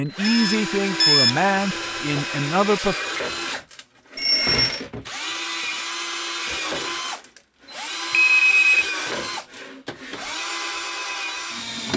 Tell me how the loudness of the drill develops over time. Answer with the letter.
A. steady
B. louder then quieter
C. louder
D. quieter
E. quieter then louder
A.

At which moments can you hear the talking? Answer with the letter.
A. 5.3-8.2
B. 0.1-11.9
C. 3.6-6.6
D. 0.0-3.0
D.